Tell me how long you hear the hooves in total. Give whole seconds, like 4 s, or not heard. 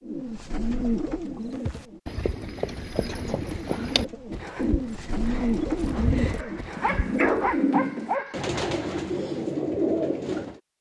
6 s.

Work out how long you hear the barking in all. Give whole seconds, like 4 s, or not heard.
2 s.